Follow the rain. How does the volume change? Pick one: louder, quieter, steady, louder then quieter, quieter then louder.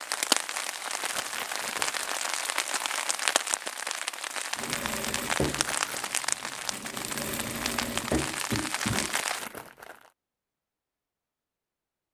steady.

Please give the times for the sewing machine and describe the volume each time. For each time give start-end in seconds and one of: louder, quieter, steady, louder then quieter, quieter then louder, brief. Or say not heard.
4.5-9.2 quieter then louder.